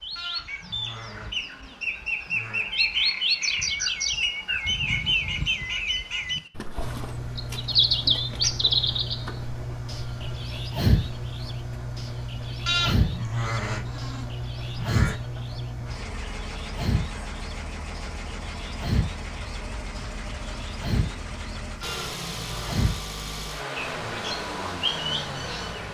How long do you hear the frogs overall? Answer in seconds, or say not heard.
not heard.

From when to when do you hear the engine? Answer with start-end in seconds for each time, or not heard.
6.8-25.8.